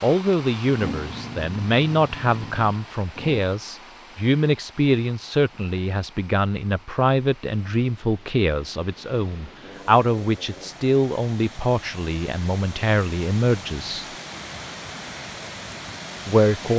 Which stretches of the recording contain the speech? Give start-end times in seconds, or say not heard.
0.0-14.1, 16.2-16.7.